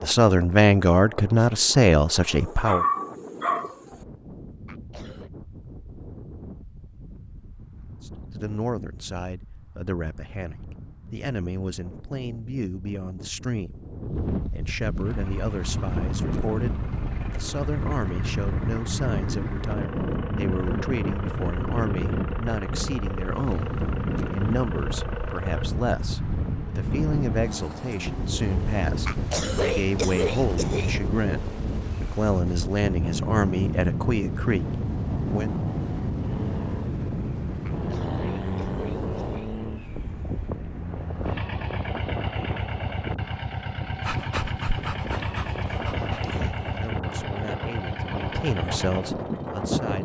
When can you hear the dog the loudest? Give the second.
3 s.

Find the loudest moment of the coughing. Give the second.
30 s.